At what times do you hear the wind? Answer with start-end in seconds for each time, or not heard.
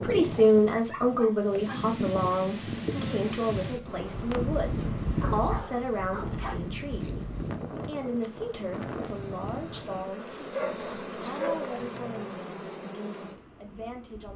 0.0-10.2.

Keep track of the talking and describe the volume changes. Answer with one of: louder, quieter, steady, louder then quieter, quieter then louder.
quieter.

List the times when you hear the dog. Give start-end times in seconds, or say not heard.
0.9-1.8, 5.2-6.5, 10.5-12.4.